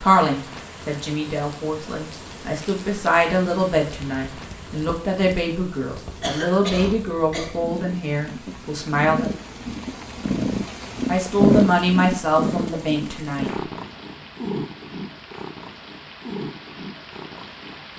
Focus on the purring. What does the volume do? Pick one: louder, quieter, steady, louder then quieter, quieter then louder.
louder then quieter.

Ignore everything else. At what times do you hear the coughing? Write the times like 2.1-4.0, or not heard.
6.2-7.7.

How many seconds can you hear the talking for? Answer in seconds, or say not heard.
12 s.